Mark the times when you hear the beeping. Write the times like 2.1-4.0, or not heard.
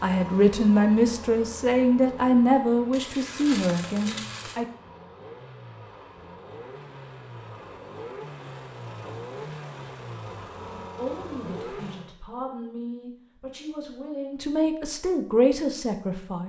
not heard.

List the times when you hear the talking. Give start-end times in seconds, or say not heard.
0.0-4.7, 10.6-16.4.